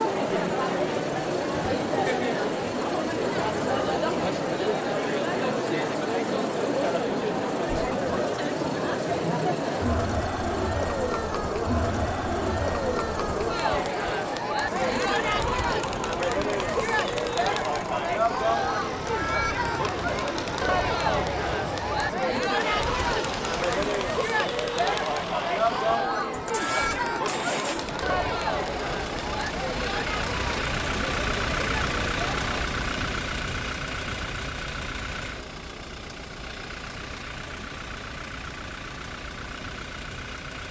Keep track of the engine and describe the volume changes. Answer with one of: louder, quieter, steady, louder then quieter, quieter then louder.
louder.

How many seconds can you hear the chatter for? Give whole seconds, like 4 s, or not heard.
33 s.